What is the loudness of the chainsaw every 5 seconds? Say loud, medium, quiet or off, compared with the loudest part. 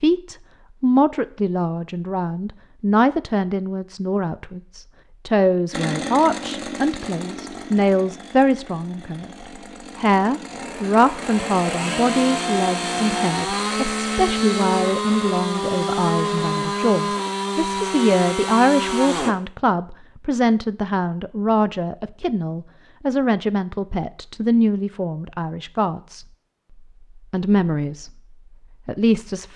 off, medium, loud, loud, off, off.